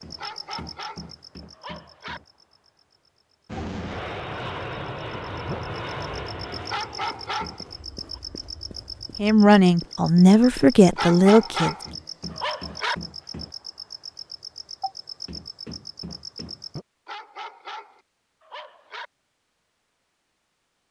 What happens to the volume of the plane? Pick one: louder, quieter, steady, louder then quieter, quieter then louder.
quieter.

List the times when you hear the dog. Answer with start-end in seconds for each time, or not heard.
0.1-2.2, 6.7-8.2, 10.9-12.9, 17.1-19.1.